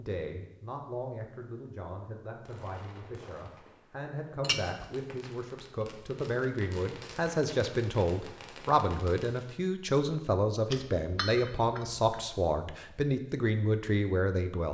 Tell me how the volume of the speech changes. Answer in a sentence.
The volume of the speech goes up.